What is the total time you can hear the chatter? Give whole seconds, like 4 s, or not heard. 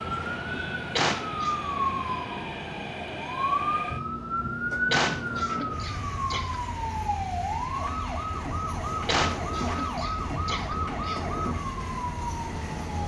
not heard.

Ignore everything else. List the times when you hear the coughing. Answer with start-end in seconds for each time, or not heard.
0.9-1.6, 4.9-6.5, 9.1-11.2.